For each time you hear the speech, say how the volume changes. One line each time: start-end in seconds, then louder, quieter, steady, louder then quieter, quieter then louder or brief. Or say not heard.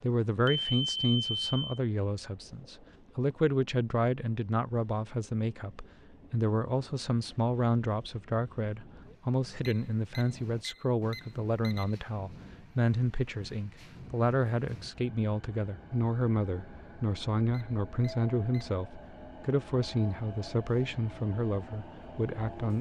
0.0-22.7 steady.